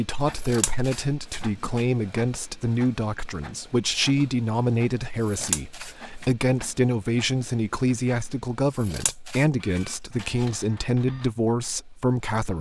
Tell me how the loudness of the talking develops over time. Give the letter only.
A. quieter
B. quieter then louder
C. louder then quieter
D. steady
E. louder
D.